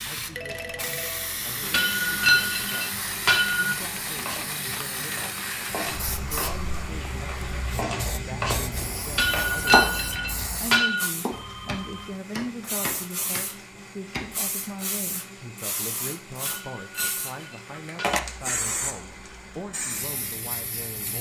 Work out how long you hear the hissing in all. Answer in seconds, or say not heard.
21 s.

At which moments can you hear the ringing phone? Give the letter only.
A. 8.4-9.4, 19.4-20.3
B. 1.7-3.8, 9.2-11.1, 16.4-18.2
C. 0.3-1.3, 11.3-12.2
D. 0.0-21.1
C.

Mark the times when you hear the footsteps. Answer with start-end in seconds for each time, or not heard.
not heard.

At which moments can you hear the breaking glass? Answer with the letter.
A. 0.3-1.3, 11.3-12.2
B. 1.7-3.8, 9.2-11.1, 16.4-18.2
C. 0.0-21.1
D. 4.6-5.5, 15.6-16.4
B.